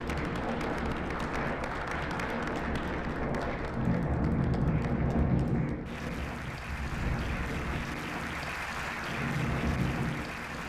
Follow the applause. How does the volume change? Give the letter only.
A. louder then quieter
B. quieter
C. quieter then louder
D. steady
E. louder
C.